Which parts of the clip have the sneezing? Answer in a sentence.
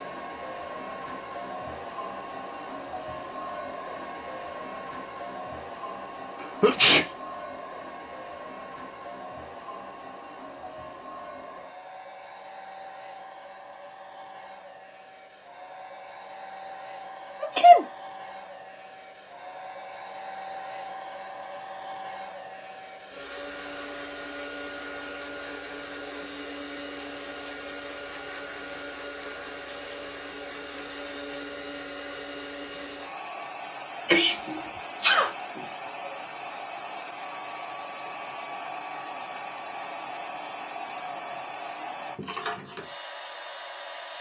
You can hear the sneezing from 6.4 to 7.0 s, from 17.4 to 17.9 s and from 34.0 to 35.6 s.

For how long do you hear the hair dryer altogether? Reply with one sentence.
You can hear the hair dryer for 44 seconds altogether.